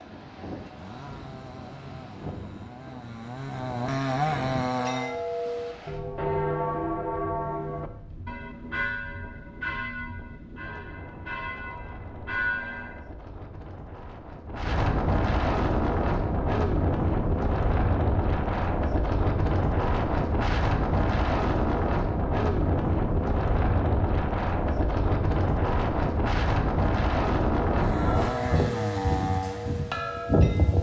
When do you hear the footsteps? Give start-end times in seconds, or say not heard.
not heard.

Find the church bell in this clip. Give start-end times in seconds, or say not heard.
4.8-13.0, 27.9-30.7.